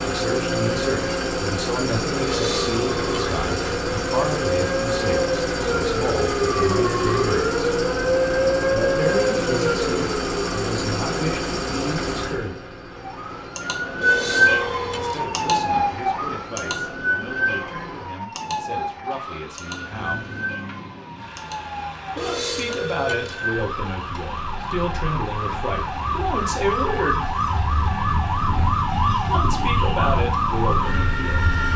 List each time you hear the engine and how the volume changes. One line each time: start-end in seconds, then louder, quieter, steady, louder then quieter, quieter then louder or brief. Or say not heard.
0.0-31.7 quieter.